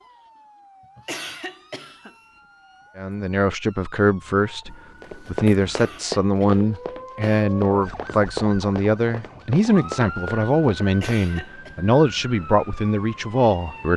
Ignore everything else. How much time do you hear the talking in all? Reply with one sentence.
The talking can be heard for 11 seconds in total.